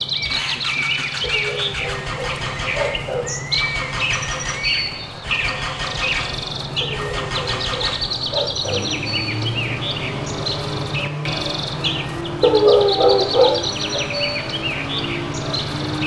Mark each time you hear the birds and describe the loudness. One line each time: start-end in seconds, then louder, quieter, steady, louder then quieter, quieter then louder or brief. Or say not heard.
0.0-16.0 steady.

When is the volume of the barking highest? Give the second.
13 s.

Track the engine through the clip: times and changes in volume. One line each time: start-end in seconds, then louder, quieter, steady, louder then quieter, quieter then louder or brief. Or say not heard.
0.0-16.0 steady.